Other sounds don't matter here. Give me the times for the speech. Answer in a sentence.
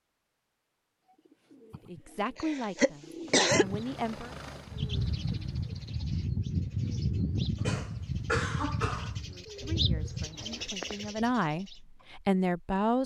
You can hear the speech from 1.9 to 4.3 s and from 9.2 to 13.0 s.